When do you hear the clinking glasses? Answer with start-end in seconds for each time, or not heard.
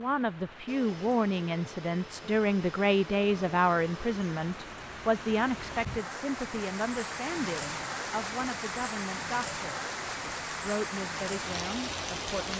not heard.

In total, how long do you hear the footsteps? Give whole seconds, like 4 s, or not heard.
not heard.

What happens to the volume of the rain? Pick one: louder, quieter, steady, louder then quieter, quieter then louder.
louder.